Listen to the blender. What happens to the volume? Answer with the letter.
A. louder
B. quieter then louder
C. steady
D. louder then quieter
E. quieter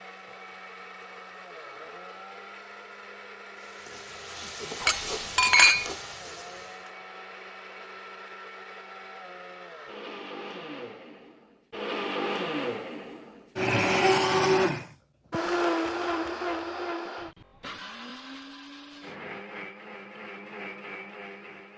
D.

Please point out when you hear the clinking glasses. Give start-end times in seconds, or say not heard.
4.8-5.9.